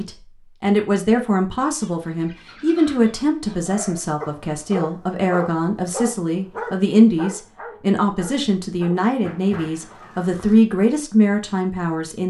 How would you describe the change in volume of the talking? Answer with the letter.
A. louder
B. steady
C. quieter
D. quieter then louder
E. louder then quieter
B.